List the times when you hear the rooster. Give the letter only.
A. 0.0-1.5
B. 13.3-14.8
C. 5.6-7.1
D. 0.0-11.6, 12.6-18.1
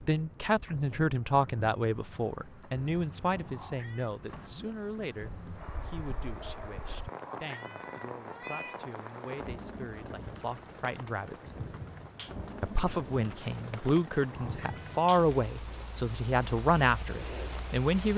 C.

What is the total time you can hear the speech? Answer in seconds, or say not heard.
17 s.